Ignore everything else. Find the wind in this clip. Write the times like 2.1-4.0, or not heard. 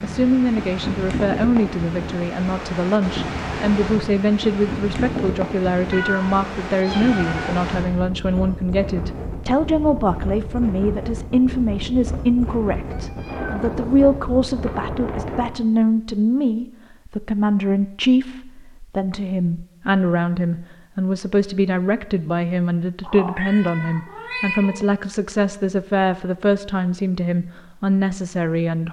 0.0-15.5.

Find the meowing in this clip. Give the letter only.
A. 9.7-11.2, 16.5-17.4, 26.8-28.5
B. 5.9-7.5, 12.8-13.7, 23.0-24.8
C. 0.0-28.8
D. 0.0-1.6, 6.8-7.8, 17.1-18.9
B.